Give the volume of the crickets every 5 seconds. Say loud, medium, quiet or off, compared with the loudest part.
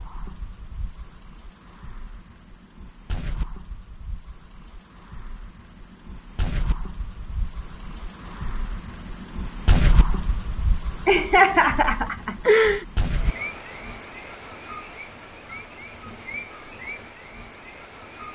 quiet, loud, loud, loud.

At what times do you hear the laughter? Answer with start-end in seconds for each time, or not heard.
11.1-12.8.